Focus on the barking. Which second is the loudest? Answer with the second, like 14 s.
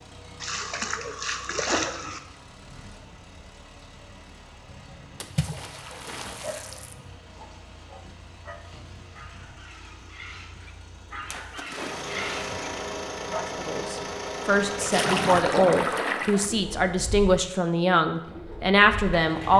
12 s.